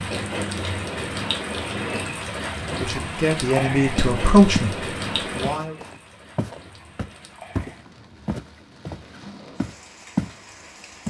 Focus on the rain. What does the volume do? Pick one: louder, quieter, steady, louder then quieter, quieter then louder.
quieter.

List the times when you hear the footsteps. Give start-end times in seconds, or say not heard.
4.0-4.8, 5.6-10.3.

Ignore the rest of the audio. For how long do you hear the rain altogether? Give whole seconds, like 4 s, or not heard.
11 s.